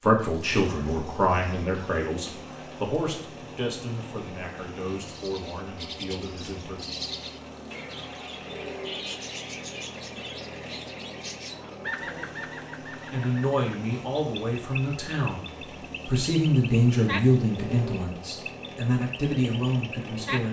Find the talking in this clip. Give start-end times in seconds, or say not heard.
0.0-6.8, 13.1-20.4.